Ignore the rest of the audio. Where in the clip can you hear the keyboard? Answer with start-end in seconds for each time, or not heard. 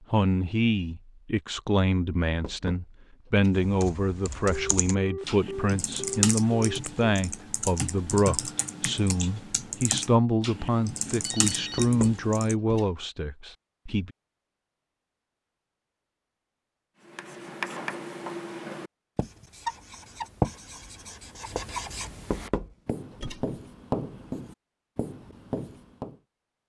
3.5-12.6.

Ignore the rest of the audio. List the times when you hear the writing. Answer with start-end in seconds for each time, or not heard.
17.1-26.1.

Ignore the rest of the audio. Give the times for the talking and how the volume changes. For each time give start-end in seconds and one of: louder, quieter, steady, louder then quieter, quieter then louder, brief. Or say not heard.
0.1-14.1 steady.